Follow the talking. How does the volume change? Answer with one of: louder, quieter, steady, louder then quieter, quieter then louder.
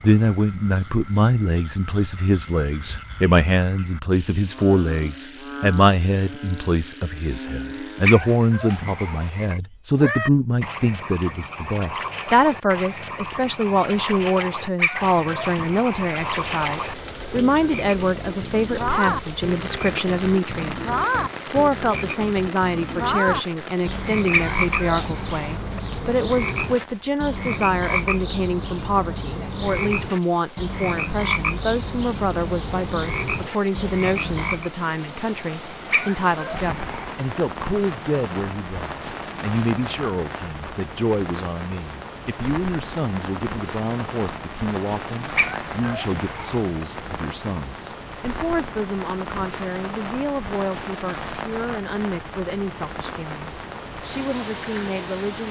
quieter.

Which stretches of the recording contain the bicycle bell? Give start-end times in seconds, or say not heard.
not heard.